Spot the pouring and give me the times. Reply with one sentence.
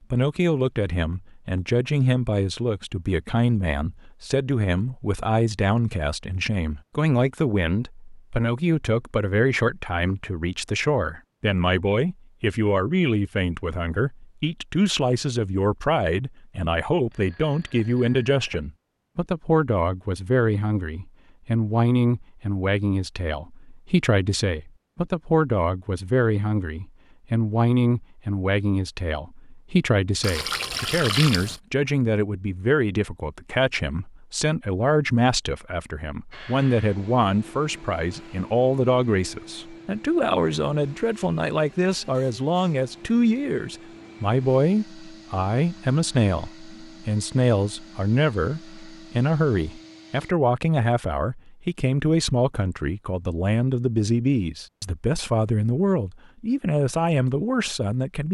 The pouring can be heard from 30.2 to 31.6 s.